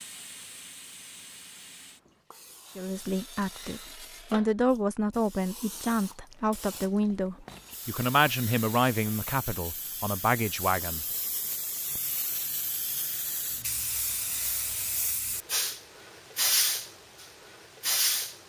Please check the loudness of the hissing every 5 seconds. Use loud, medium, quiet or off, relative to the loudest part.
quiet, quiet, medium, loud.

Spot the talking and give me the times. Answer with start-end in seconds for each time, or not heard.
2.8-11.1.